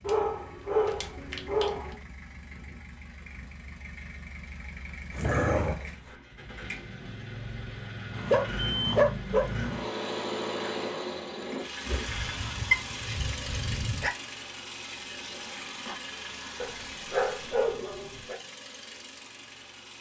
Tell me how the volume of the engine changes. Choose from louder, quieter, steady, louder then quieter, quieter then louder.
louder then quieter.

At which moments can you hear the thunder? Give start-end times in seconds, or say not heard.
12.1-14.1.